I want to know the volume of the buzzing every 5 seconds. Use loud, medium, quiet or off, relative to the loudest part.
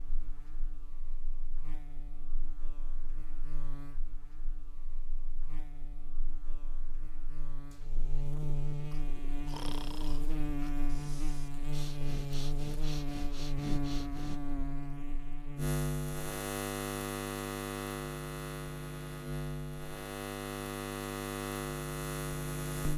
quiet, medium, loud, loud, loud.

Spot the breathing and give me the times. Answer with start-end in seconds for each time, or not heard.
8.9-14.4.